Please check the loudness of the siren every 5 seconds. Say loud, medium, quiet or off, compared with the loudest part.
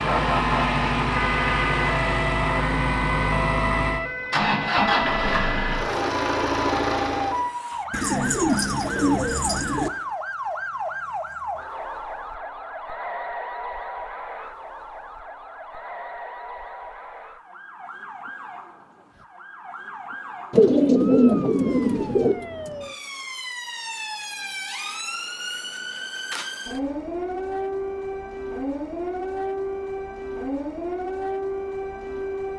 loud, loud, loud, medium, medium, loud, loud.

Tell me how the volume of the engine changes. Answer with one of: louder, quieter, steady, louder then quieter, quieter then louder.
steady.